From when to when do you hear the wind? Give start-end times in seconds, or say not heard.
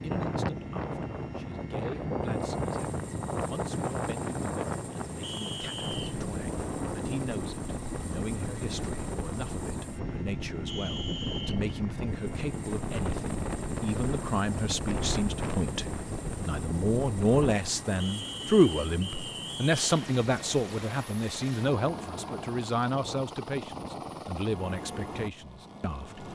0.0-17.6.